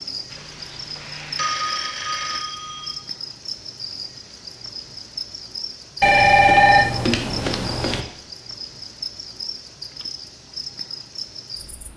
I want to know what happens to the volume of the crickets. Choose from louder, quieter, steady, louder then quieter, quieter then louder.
steady.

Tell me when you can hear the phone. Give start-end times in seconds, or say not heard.
0.3-2.9, 6.0-8.1.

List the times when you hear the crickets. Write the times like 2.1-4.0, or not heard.
0.0-11.9.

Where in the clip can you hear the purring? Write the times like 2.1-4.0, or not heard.
not heard.